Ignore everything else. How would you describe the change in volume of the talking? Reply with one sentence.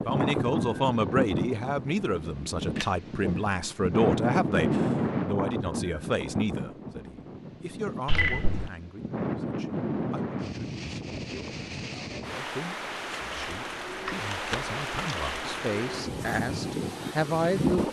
The loudness of the talking goes down, then up.